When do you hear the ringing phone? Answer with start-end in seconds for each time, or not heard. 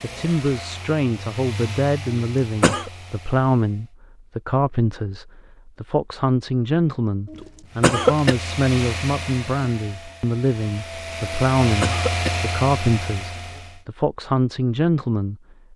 not heard.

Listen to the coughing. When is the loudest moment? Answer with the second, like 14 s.
8 s.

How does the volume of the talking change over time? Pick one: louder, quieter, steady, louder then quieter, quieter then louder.
steady.